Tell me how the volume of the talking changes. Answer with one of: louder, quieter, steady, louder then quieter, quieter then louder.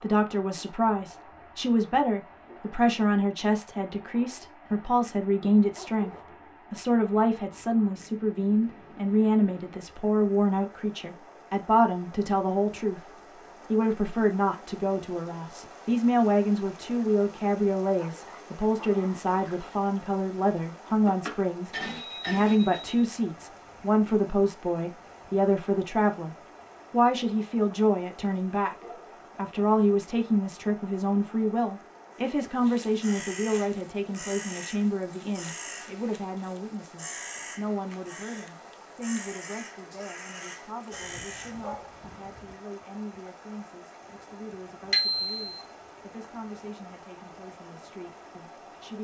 quieter.